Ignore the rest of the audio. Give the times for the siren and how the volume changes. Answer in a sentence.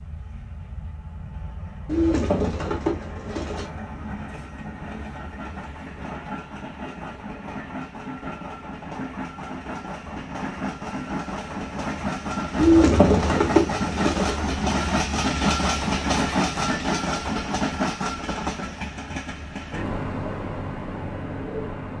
The siren can't be heard in this clip.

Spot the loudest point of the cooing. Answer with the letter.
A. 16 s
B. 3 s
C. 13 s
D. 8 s
C.